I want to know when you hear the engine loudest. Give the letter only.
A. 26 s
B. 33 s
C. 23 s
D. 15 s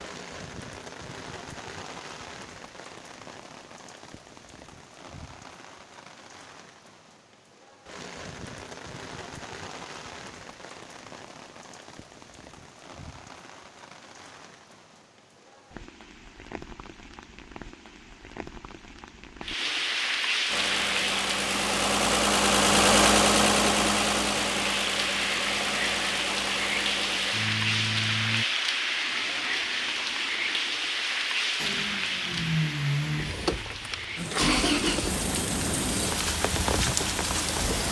C.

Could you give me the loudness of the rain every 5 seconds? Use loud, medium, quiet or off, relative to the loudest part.
quiet, quiet, quiet, medium, loud, loud, loud, loud.